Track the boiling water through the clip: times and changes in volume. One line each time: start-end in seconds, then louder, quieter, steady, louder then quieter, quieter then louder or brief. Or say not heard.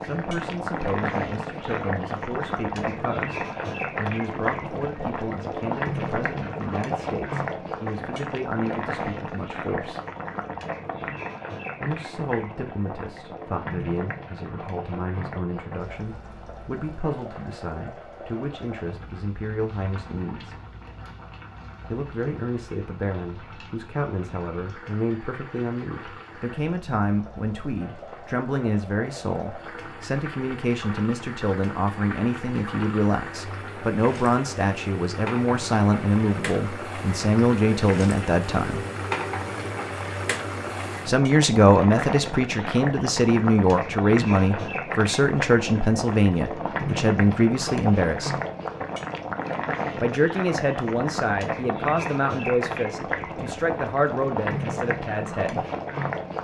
0.0-56.3 quieter then louder.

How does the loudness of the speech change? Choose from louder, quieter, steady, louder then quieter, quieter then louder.
louder.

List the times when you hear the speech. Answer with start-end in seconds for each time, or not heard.
0.0-10.0, 11.8-20.6, 21.9-38.8, 41.0-48.4, 50.0-55.6.